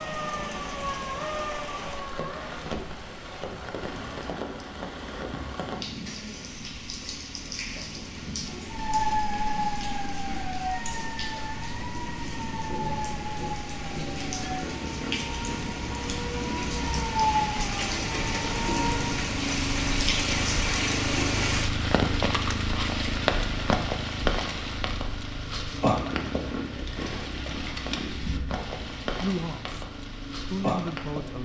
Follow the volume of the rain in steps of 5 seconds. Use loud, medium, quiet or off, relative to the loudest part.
medium, medium, medium, loud, loud, medium, medium.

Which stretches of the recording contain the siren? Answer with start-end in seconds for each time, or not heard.
0.0-2.5, 8.7-19.2.